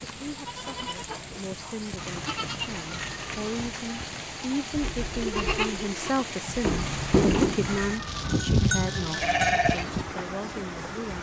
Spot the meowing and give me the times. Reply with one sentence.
You can hear the meowing from 1.9 to 3.7 s and from 6.8 to 8.4 s.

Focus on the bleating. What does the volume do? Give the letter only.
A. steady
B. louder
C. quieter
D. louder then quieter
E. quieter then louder
B.